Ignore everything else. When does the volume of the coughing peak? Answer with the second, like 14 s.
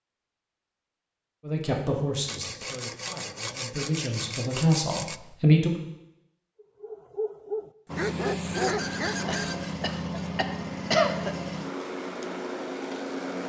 11 s.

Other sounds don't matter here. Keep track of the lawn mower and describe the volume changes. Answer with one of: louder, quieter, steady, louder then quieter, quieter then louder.
steady.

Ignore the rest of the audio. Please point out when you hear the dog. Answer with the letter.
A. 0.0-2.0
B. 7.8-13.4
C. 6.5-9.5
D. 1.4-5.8
C.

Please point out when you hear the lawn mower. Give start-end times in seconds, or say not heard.
7.8-13.4.